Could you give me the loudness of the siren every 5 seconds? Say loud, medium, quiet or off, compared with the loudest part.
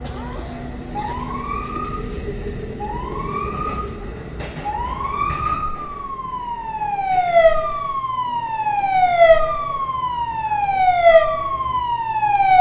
quiet, loud, loud.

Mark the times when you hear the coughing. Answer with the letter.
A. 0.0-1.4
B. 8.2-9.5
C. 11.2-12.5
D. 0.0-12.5
A.